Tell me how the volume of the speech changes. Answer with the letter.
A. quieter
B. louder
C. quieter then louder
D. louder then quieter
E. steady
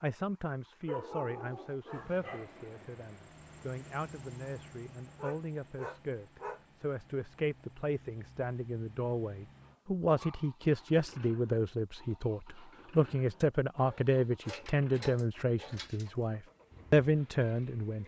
B.